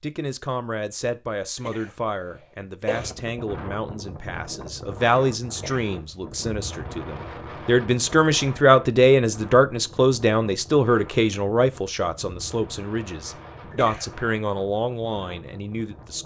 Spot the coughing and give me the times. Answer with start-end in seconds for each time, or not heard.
1.6-3.1, 5.5-6.0, 13.7-14.2.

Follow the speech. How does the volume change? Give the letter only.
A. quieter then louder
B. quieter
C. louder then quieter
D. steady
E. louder
C.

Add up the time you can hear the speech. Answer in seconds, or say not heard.
16 s.